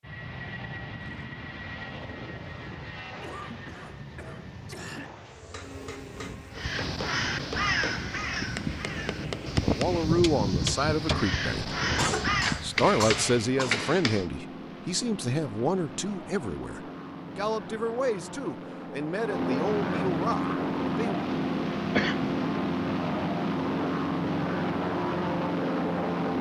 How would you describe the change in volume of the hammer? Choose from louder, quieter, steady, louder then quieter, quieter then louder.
louder.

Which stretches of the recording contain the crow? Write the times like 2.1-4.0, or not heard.
6.5-12.6.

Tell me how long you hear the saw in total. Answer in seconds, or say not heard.
not heard.